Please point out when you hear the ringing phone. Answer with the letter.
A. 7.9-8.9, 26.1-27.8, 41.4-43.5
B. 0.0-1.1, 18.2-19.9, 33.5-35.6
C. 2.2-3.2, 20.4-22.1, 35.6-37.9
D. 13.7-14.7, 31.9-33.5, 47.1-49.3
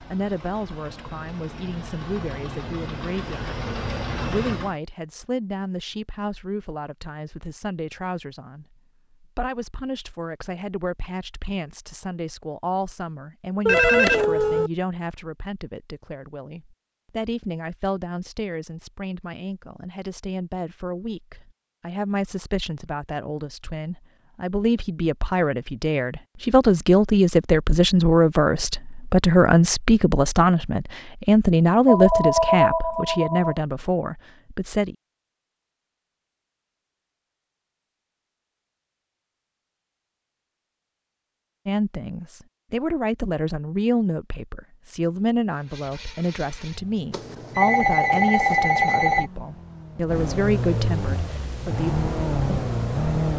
D.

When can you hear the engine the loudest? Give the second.
53 s.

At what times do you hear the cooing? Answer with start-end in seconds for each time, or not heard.
not heard.